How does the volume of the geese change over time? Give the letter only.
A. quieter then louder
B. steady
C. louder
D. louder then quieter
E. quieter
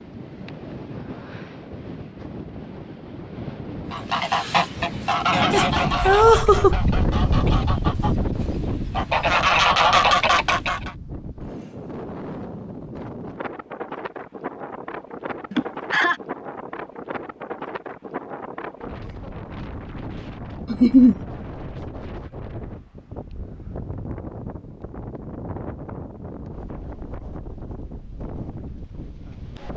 A.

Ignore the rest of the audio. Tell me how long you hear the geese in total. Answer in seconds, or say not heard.
7 s.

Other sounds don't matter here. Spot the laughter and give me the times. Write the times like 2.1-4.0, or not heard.
5.5-6.8, 15.5-16.2, 20.7-21.1.